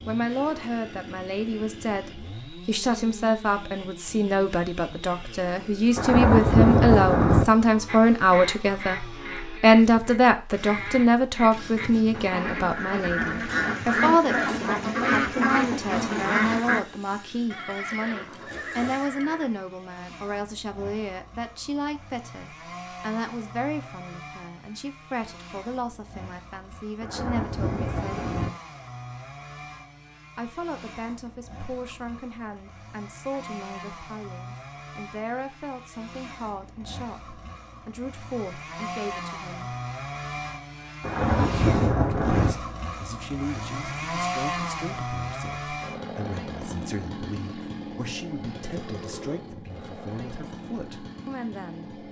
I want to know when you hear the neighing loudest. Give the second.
18 s.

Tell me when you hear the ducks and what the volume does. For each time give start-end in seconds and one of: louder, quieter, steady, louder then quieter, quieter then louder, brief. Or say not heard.
7.8-16.9 louder.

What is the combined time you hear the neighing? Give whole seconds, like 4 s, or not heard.
2 s.